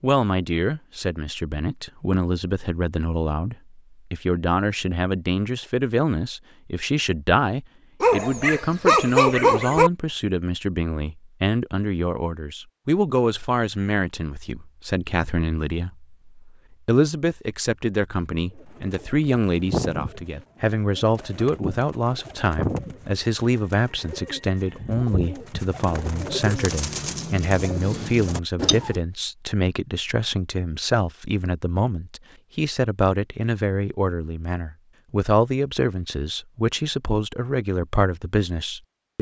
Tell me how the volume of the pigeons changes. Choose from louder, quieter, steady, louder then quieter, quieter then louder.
quieter then louder.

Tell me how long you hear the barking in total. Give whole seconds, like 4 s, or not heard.
2 s.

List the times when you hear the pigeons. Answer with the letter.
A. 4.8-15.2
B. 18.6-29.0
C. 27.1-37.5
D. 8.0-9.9
B.